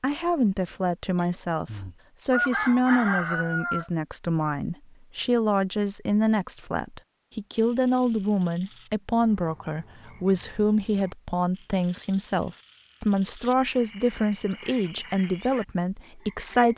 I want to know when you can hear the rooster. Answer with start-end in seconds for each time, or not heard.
1.2-3.9.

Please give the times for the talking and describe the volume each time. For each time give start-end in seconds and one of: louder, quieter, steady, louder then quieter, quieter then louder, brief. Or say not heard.
0.0-16.7 steady.